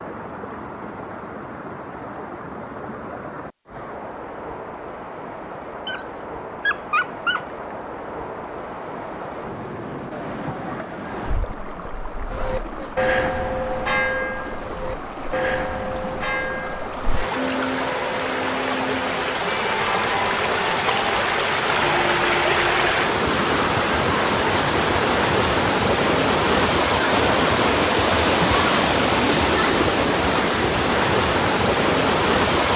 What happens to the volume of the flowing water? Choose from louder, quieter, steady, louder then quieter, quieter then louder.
louder.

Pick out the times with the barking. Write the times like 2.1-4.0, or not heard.
5.8-7.5.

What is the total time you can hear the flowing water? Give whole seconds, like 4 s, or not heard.
33 s.